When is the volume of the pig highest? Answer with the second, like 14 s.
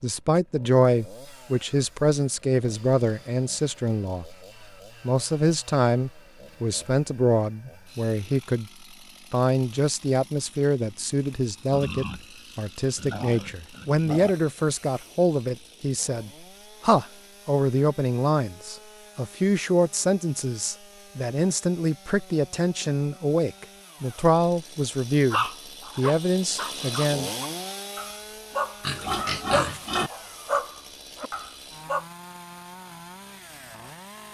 29 s.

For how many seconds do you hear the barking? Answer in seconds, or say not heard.
7 s.